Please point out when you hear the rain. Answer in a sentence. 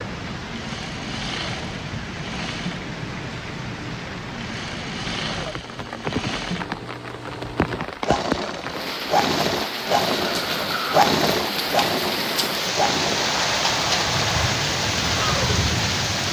The rain can be heard from 0.0 to 16.2 s.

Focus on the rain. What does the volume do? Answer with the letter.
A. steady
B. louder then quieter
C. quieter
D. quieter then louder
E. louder
E.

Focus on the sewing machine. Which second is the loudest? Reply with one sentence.
The loudest moment of the sewing machine is at 11 seconds.